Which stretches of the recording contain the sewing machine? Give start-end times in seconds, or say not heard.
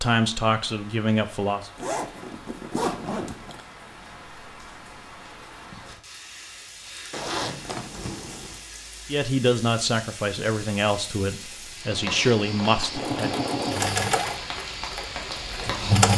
11.9-16.1.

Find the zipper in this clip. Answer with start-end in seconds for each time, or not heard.
1.8-3.6, 7.1-8.6, 14.0-14.4.